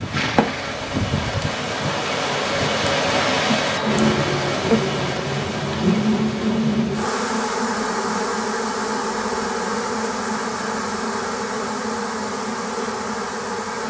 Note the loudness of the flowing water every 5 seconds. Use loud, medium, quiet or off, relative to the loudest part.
loud, medium, quiet.